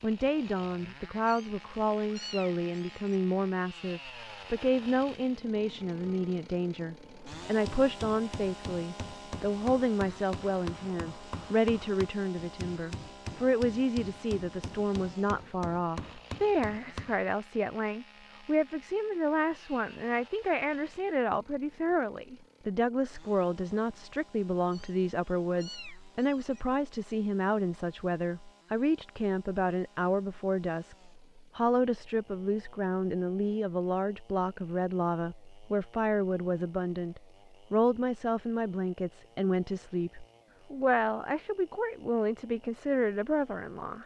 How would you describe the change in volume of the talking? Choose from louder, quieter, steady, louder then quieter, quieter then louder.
steady.